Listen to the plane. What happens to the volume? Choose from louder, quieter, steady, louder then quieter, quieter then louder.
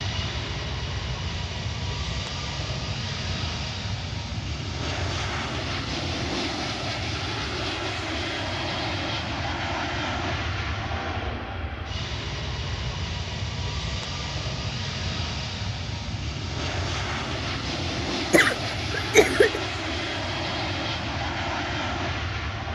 steady.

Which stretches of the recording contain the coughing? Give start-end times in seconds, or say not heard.
18.3-19.6.